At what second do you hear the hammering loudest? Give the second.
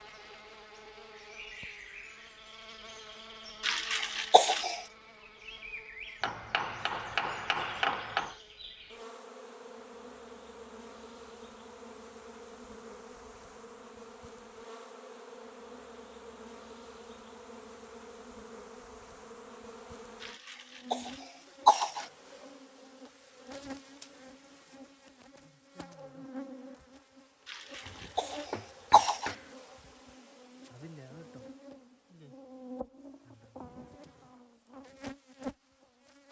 8 s.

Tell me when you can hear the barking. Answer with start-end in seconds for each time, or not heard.
not heard.